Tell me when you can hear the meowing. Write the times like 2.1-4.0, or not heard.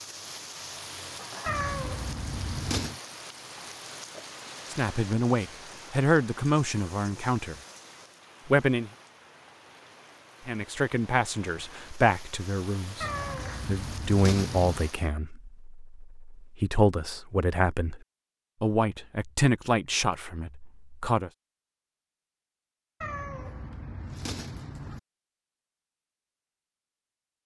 1.4-3.0, 13.0-14.8, 23.0-25.0.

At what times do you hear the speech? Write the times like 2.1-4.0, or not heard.
4.7-7.5, 8.4-8.9, 10.4-18.0, 18.6-21.3.